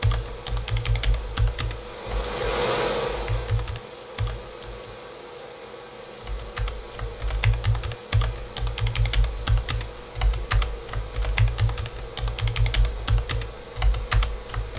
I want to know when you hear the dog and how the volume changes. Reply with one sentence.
You can't hear the dog here.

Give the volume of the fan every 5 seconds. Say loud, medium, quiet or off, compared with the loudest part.
loud, medium, medium.